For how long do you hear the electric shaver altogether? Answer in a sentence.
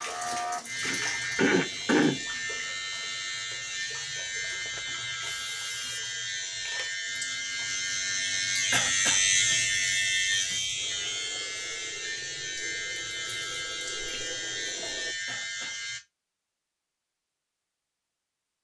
The electric shaver can be heard for 16 seconds in total.